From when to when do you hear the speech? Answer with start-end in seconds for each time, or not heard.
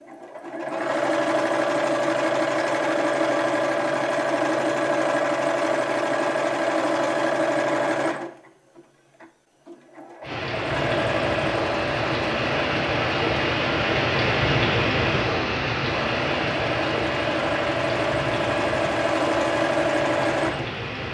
not heard.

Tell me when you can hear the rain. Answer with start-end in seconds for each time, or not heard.
10.2-21.0.